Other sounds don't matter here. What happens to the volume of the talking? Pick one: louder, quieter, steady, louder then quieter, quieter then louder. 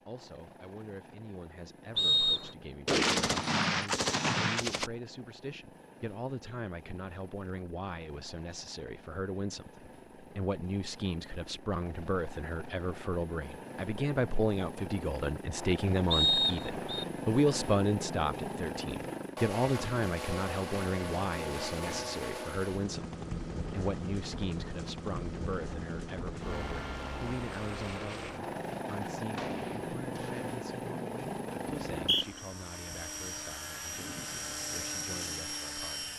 louder then quieter.